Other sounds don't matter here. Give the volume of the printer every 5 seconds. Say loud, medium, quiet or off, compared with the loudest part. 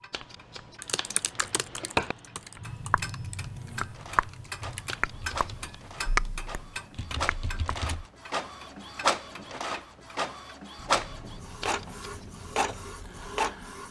quiet, loud, loud.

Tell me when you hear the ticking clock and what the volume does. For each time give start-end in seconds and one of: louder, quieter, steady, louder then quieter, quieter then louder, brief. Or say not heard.
0.0-13.8 louder then quieter.